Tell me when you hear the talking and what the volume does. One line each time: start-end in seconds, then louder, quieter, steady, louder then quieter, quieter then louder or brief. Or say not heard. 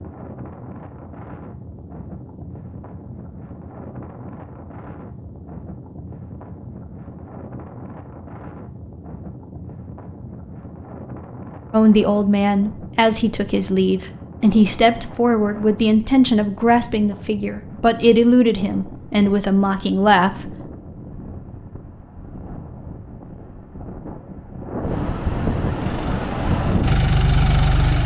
11.7-20.6 steady.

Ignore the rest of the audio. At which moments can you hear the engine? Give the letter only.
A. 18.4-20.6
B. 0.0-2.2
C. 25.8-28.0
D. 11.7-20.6
C.